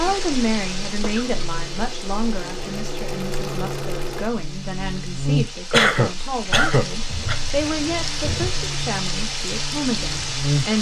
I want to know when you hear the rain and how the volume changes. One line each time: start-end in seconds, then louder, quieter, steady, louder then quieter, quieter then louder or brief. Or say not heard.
0.0-10.7 quieter then louder.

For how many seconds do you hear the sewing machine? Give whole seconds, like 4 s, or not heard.
4 s.